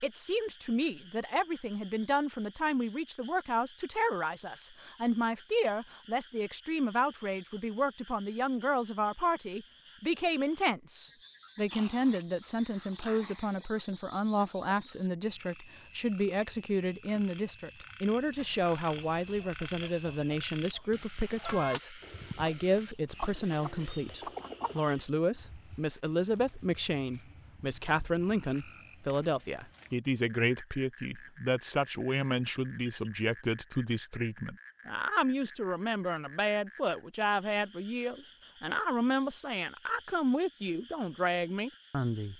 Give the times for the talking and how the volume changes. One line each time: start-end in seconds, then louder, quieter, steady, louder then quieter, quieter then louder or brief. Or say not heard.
0.0-42.3 steady.